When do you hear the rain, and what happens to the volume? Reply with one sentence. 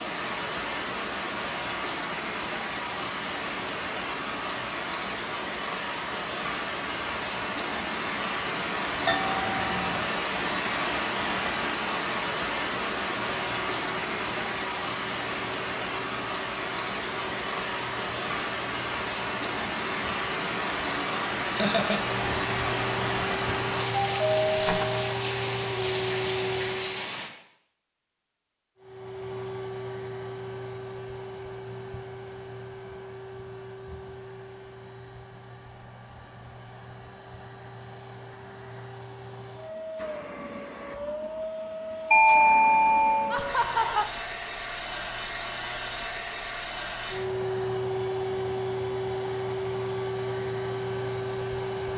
The rain can be heard from 0.0 to 27.3 s, at a steady volume.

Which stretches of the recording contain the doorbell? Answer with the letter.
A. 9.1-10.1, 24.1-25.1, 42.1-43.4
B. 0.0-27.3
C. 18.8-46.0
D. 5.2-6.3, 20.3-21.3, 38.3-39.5
A.